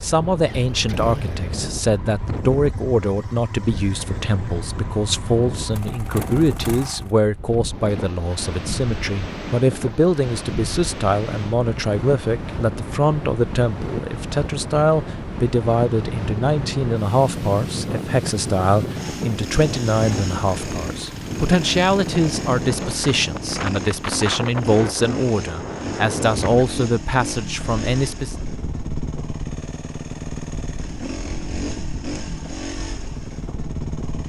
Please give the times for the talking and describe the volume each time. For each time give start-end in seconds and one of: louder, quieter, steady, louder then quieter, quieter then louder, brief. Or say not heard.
0.0-28.4 steady.